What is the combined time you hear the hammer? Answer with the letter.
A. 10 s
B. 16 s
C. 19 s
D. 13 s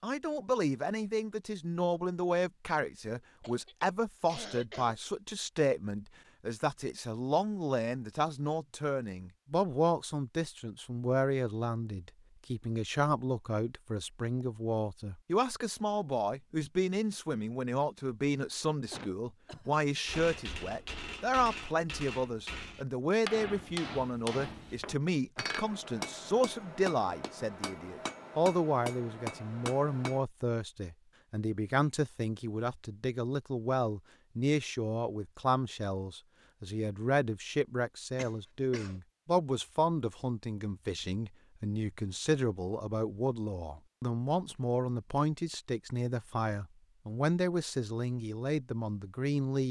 A.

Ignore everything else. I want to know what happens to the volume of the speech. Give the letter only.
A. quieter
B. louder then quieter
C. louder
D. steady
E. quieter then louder
D.